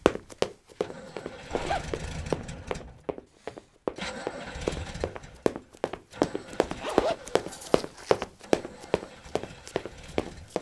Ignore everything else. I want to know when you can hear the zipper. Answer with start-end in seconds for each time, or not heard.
1.5-2.0, 6.5-8.2.